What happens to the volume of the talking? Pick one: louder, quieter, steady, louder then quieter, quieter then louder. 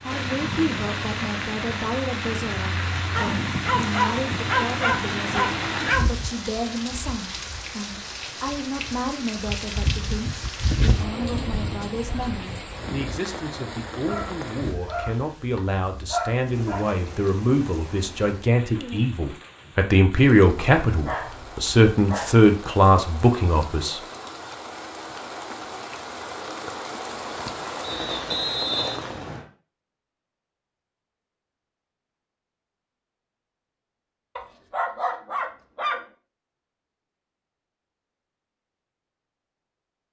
louder.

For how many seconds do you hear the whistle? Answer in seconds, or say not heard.
2 s.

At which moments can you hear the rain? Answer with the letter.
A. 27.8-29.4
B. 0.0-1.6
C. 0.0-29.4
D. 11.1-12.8
C.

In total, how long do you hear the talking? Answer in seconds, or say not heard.
24 s.